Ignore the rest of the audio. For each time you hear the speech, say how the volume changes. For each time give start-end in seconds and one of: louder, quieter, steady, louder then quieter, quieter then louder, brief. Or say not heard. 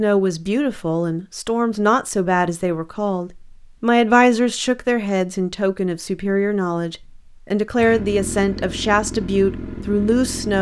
0.0-10.5 steady.